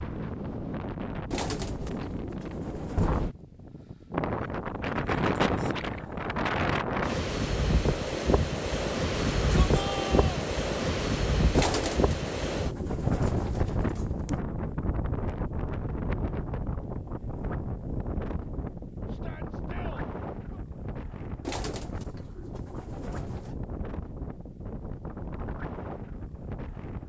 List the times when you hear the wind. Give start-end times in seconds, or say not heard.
0.0-27.0.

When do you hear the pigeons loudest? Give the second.
12 s.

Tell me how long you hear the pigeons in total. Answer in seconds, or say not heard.
7 s.